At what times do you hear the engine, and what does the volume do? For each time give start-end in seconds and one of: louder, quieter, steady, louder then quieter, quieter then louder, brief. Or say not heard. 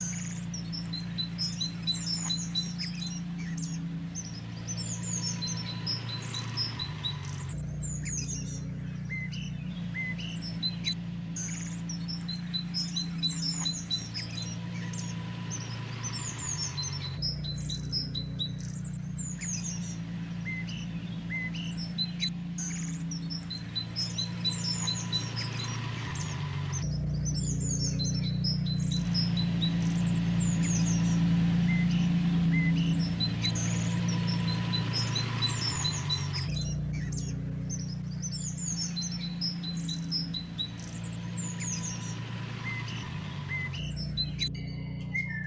0.0-45.4 louder then quieter.